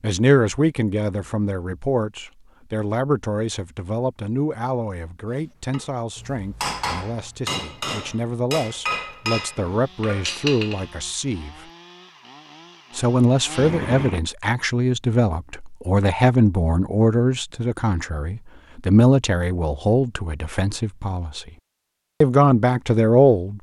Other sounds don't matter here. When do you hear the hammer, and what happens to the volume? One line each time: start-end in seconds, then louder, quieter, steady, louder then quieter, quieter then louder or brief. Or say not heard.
5.7-10.9 steady.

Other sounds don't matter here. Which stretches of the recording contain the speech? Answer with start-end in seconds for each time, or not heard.
0.0-11.6, 12.9-21.5, 22.2-23.5.